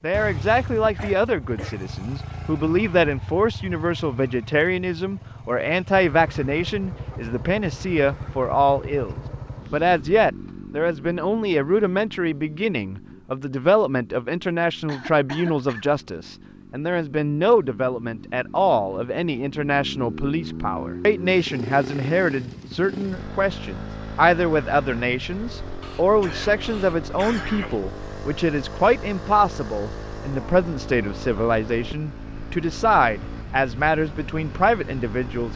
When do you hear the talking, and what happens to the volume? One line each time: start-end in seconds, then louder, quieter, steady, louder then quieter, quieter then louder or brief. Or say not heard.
0.0-35.5 steady.